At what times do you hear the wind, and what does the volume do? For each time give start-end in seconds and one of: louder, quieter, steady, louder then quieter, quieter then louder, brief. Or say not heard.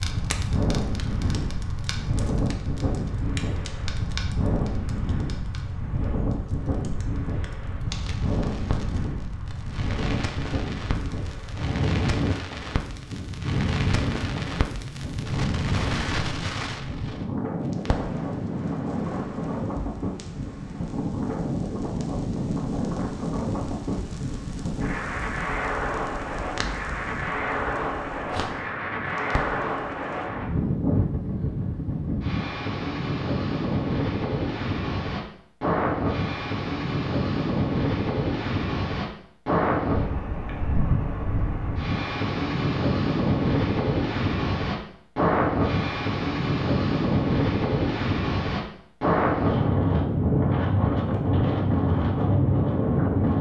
0.0-53.3 louder.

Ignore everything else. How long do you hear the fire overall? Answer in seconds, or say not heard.
30 s.